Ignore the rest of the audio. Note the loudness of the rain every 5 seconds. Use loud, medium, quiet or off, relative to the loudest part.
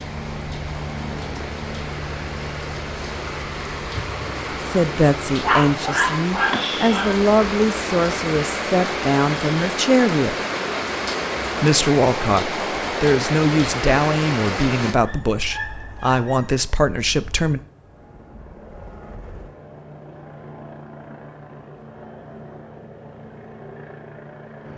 medium, loud, loud, off, off.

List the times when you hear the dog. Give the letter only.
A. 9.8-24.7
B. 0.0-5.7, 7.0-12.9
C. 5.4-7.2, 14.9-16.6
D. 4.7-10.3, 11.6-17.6
C.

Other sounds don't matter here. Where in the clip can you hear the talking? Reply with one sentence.
The talking can be heard from 4.7 to 10.3 s and from 11.6 to 17.6 s.